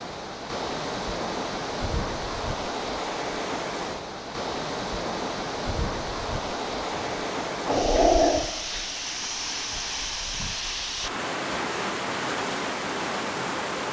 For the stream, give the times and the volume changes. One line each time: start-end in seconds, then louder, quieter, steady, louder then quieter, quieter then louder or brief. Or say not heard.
0.0-13.8 steady.